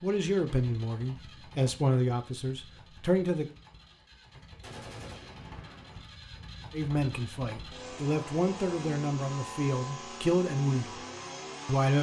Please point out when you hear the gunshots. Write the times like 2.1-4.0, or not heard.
4.6-6.0.